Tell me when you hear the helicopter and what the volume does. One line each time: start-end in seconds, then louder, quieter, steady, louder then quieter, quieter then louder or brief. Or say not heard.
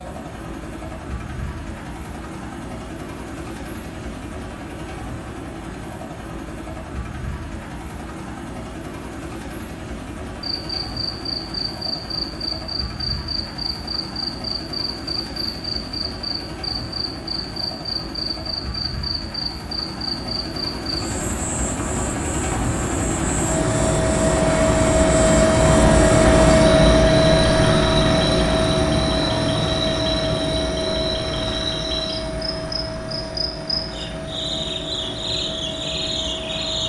0.0-36.8 louder then quieter.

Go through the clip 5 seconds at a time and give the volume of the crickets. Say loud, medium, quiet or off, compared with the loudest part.
off, off, loud, loud, loud, loud, loud, loud.